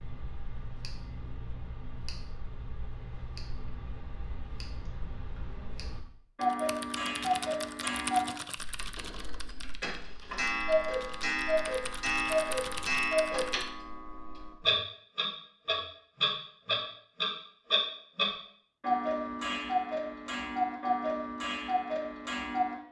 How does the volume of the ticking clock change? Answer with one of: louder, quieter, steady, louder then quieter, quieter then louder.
louder.